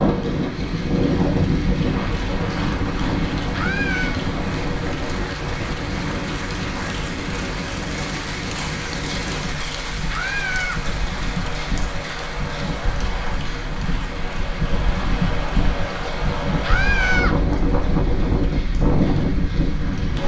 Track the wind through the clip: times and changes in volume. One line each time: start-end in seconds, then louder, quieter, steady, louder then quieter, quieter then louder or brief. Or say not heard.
0.0-20.2 quieter then louder.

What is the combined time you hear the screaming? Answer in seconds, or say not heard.
2 s.